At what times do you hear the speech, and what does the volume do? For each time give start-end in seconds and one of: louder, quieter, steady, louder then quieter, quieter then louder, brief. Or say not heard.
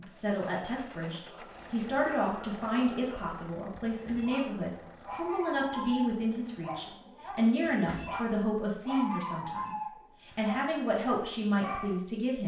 0.0-12.4 steady.